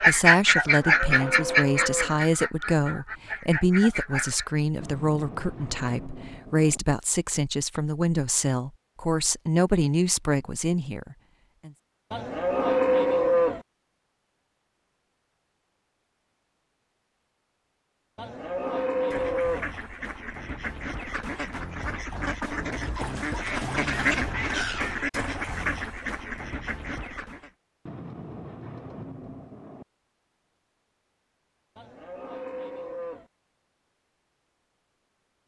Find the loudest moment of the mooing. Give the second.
13 s.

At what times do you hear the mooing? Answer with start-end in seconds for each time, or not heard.
0.8-2.2, 12.1-13.6, 18.1-19.7, 31.8-33.2.